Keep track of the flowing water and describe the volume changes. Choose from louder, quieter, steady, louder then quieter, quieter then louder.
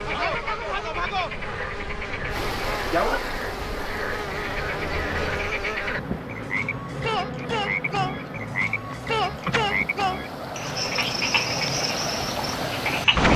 quieter then louder.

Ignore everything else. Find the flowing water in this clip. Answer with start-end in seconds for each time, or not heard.
2.3-13.3.